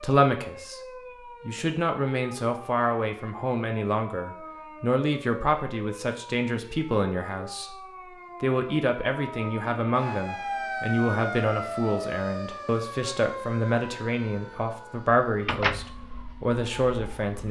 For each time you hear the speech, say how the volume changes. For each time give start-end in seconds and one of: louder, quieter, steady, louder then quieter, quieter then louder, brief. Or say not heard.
0.0-0.8 brief
1.4-7.8 steady
8.4-17.4 steady.